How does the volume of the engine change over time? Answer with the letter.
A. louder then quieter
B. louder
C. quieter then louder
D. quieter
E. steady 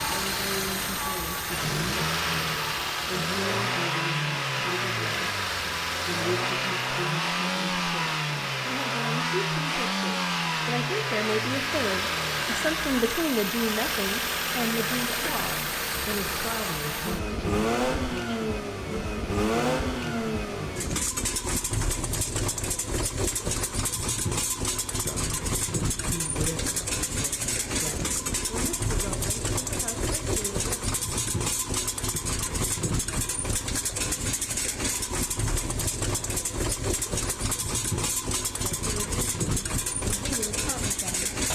E.